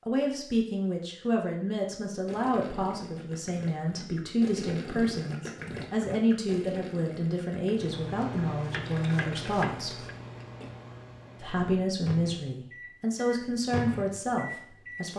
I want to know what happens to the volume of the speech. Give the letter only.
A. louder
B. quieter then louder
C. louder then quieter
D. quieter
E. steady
E.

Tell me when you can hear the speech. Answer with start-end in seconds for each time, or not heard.
0.1-10.0, 11.4-15.1.